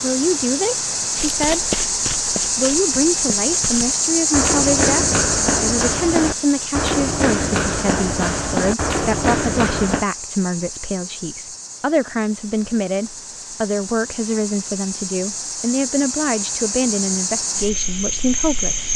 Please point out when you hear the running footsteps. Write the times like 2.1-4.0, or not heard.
1.1-10.1.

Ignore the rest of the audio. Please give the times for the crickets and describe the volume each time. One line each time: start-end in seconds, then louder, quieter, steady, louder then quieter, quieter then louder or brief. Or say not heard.
0.0-18.9 quieter then louder.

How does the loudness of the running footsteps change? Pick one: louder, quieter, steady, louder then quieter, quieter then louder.
louder.